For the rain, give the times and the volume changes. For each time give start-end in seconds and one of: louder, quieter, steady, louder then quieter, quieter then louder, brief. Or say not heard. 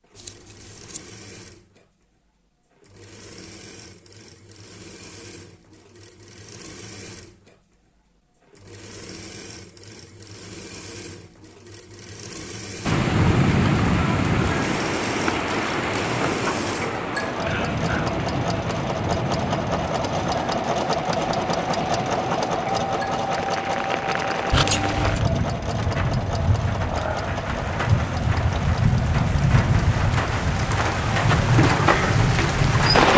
12.8-33.1 quieter then louder.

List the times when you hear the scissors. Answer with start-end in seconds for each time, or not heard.
0.1-1.0, 24.5-25.2.